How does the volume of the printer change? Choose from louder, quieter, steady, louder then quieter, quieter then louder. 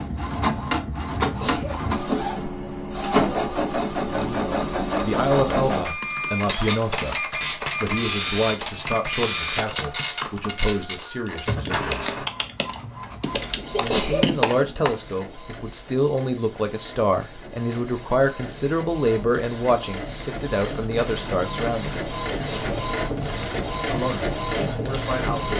quieter then louder.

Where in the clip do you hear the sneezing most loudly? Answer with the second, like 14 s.
14 s.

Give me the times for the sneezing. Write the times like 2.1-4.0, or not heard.
1.2-1.8, 13.7-14.2, 22.3-22.8.